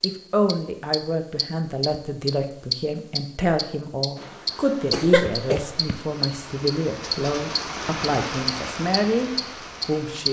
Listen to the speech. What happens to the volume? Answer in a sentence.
The loudness of the speech stays about the same.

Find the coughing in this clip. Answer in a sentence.
You can hear the coughing from 4.9 to 6.0 s.